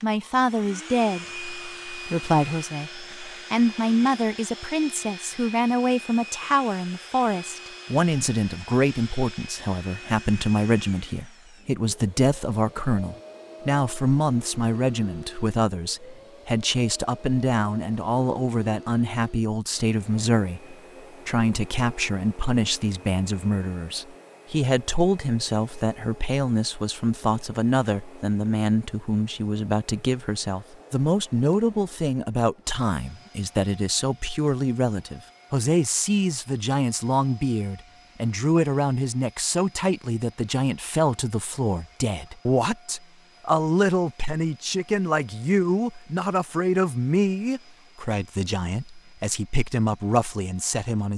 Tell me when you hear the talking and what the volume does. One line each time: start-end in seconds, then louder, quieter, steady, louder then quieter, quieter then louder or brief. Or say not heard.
0.0-51.1 steady.